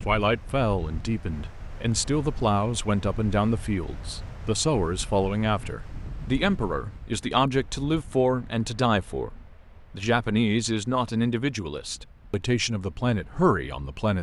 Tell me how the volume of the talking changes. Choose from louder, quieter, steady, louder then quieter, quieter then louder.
steady.